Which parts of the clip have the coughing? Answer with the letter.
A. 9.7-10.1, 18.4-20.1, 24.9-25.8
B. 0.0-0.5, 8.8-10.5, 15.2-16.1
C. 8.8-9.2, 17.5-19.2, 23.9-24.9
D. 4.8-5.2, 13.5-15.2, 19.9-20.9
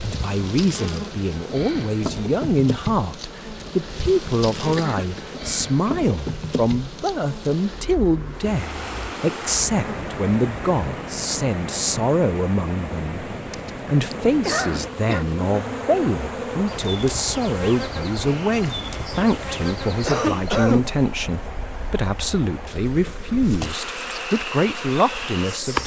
D.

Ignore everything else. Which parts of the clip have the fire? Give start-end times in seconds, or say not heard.
not heard.